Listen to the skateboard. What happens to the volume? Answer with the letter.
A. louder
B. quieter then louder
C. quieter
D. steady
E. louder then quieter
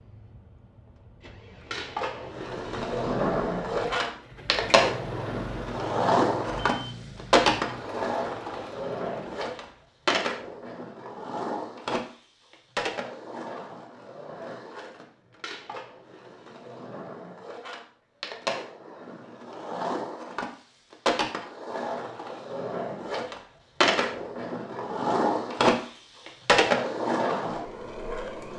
B.